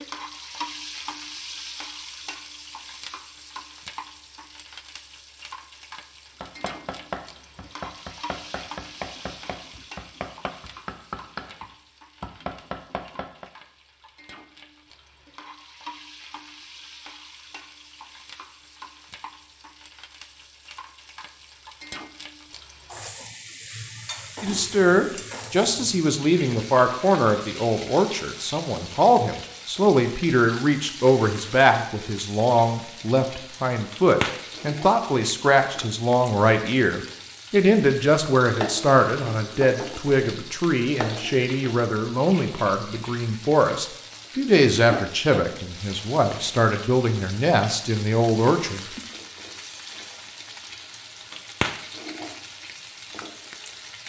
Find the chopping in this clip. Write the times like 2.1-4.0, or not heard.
6.4-13.5.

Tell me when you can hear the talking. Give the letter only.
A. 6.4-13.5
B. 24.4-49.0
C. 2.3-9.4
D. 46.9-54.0
B.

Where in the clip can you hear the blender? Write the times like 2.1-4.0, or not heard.
not heard.